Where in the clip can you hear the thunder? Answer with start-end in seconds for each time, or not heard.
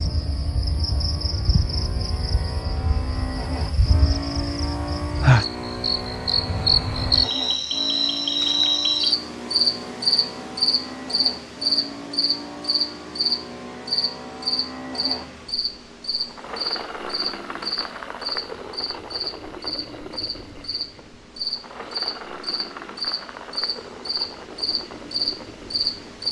not heard.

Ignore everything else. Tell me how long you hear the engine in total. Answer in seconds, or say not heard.
26 s.